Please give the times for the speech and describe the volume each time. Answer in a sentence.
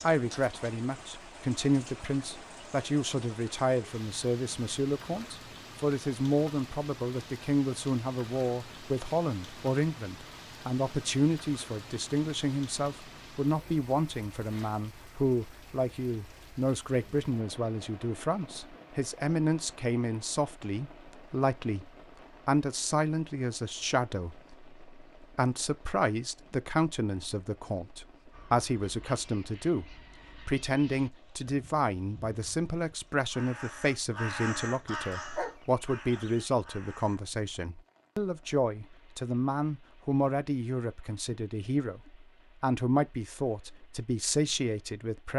You can hear the speech from 0.0 to 45.3 s, at a steady volume.